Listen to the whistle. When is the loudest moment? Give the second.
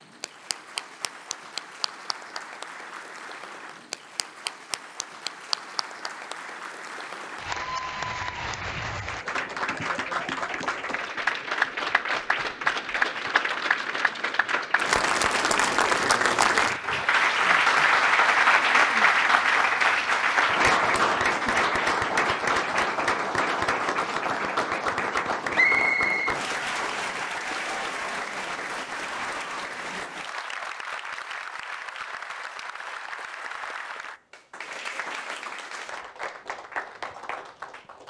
26 s.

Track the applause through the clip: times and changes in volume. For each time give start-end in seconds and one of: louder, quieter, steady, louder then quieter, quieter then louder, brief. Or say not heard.
0.0-38.0 louder then quieter.